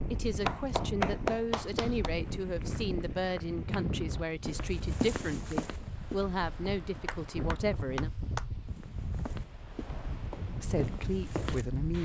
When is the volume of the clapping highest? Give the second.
1 s.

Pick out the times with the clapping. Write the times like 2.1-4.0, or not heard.
0.4-2.1, 7.0-8.4.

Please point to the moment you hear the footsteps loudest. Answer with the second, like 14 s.
5 s.